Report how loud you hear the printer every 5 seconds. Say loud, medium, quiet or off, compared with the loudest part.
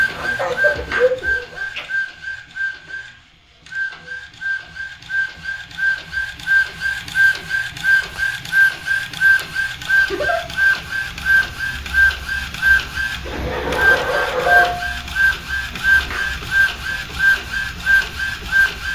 medium, loud, loud, loud.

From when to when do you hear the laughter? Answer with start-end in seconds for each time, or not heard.
0.1-1.9, 10.0-10.4, 13.2-14.7.